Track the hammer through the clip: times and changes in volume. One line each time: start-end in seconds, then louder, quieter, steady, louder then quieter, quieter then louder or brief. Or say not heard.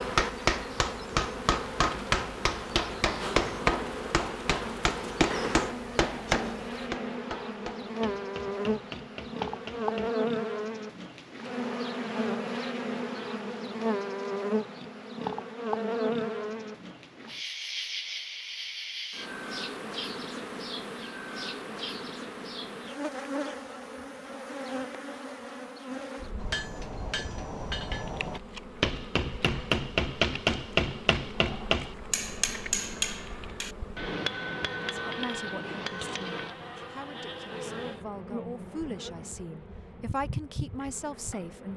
0.0-10.1 quieter
26.4-36.5 louder then quieter.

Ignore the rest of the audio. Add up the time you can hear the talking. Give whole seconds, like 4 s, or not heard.
7 s.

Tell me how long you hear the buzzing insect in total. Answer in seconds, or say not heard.
42 s.